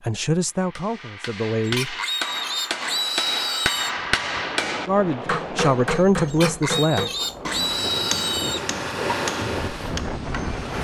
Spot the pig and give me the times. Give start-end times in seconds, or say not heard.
1.6-4.0, 6.2-8.7.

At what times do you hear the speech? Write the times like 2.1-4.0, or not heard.
0.1-1.9, 4.8-7.1.